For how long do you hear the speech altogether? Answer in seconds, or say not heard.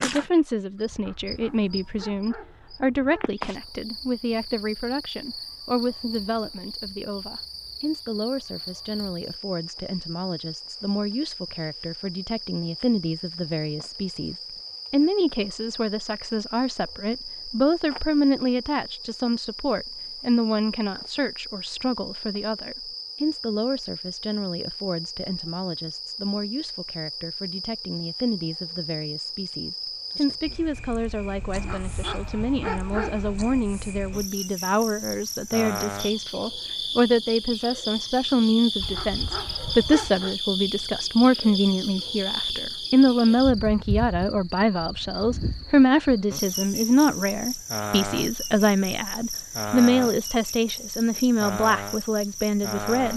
53 s.